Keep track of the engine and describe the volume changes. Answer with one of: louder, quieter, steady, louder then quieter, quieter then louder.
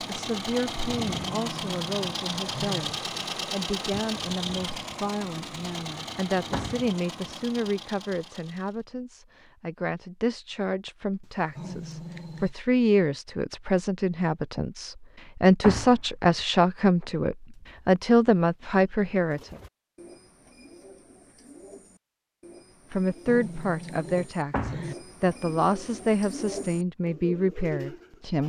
quieter.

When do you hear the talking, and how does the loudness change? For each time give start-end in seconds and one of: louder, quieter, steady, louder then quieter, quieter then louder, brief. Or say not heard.
0.1-19.6 louder
22.9-28.4 quieter then louder.